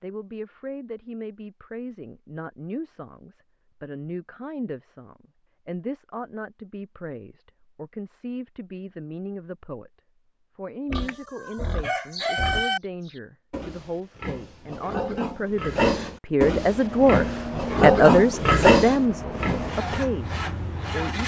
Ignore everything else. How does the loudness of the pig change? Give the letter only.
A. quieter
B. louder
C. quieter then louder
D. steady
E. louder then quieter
B.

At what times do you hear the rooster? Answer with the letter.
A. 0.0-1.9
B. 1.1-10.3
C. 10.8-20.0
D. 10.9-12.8
D.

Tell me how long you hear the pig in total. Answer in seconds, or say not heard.
9 s.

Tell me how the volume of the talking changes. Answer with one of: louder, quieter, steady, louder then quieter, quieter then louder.
louder.